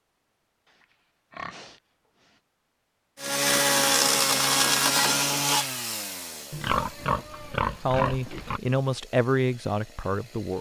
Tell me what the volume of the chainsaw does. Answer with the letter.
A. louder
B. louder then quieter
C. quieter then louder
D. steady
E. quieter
E.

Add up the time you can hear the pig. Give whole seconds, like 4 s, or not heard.
4 s.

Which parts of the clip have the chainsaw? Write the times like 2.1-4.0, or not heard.
3.1-10.5.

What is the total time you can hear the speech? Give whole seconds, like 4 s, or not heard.
3 s.